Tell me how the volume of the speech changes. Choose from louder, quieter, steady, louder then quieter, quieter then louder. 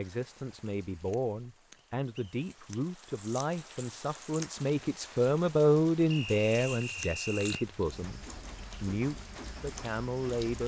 louder then quieter.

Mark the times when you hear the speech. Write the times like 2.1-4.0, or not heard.
0.0-10.6.